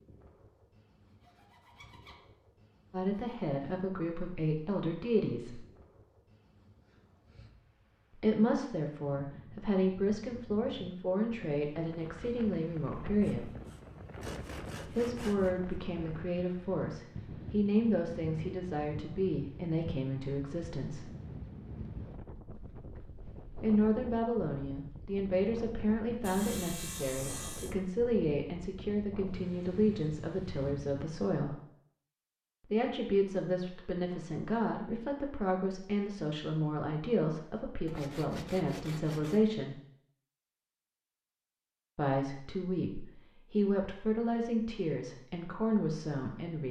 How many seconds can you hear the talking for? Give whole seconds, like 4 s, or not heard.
34 s.